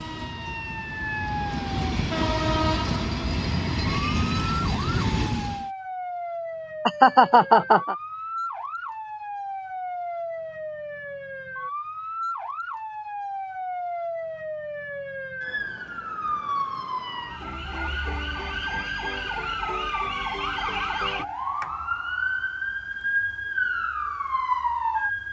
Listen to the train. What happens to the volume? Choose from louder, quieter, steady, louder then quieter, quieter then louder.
louder.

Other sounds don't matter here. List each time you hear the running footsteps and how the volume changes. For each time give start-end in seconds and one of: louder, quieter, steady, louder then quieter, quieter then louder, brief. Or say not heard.
not heard.